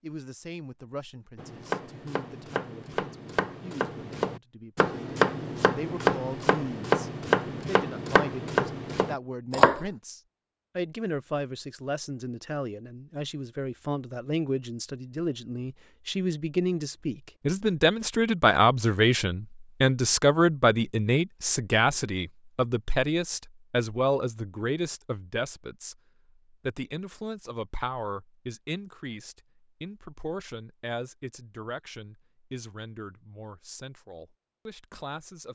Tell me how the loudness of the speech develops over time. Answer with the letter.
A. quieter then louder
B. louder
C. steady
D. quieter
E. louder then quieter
E.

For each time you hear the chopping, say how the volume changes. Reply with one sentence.
You can hear the chopping from 1.4 to 9.8 s, getting louder.